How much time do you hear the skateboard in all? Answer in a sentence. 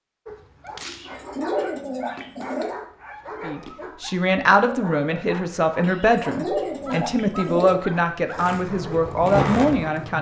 The skateboard can be heard for 2 seconds in total.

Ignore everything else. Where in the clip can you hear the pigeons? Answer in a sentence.
You can hear the pigeons from 0.8 to 2.8 s and from 5.8 to 7.8 s.